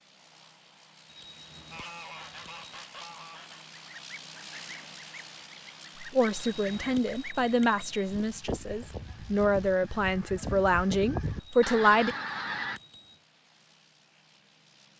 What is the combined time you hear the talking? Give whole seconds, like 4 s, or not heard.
6 s.